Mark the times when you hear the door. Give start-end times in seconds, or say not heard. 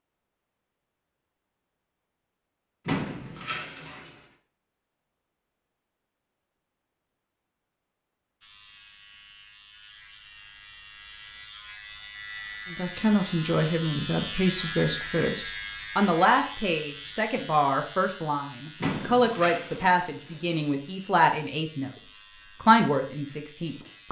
2.9-4.2, 18.8-20.6.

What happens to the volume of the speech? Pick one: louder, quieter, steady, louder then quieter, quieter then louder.
steady.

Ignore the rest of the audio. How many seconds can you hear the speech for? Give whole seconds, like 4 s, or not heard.
11 s.